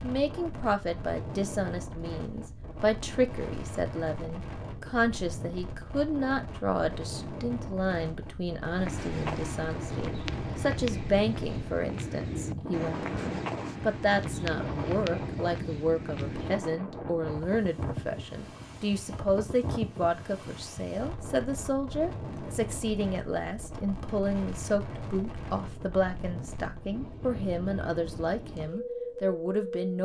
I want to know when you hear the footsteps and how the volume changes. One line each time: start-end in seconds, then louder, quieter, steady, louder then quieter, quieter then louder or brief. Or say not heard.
8.7-16.7 steady.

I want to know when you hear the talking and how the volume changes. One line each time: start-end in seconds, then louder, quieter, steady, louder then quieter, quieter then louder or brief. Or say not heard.
0.0-29.9 steady.